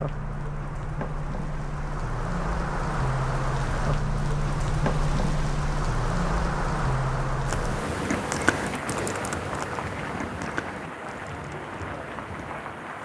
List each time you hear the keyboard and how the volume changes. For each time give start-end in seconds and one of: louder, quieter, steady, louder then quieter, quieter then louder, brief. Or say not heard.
7.5-12.6 quieter.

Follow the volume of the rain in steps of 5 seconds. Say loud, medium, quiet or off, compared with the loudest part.
loud, loud, medium.